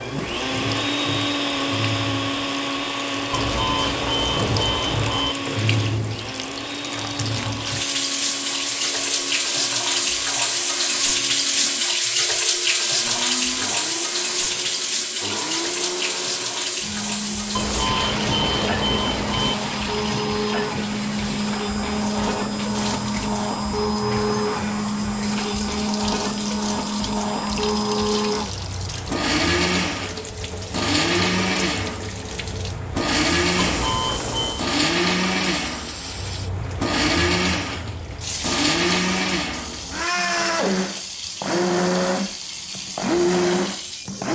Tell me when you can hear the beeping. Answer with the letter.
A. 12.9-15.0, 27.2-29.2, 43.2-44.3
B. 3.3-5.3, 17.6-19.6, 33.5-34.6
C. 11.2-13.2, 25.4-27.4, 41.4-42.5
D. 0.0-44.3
B.